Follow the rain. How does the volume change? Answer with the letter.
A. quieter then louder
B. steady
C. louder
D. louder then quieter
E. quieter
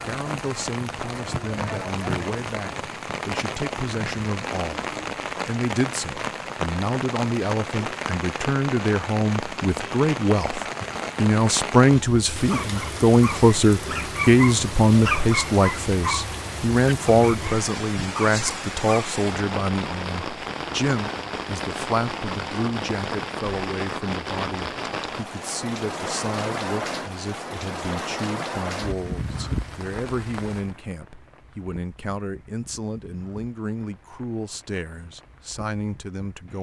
E.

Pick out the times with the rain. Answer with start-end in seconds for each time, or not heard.
0.0-36.5.